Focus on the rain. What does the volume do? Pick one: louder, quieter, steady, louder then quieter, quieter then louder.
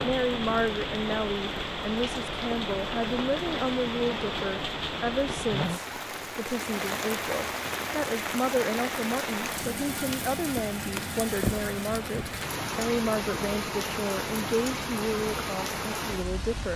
steady.